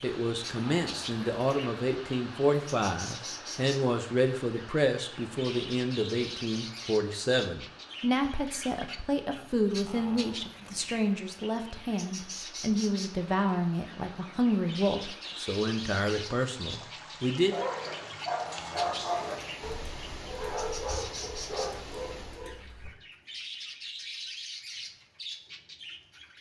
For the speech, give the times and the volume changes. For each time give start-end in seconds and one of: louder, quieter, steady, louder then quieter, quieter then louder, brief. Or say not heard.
0.0-17.6 steady.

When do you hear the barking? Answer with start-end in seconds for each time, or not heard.
17.4-22.9.